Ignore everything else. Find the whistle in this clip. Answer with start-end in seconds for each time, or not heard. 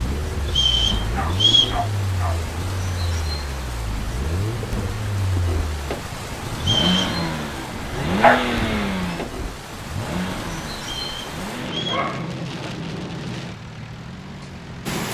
0.5-1.8, 6.6-7.2, 10.8-12.1.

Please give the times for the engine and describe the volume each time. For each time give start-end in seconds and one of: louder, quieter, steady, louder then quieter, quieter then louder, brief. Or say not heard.
0.0-15.0 louder then quieter.